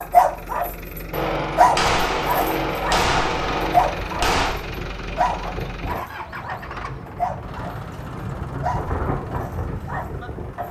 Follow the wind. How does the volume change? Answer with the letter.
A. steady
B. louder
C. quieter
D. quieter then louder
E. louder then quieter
B.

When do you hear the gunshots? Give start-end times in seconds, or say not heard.
1.1-4.5.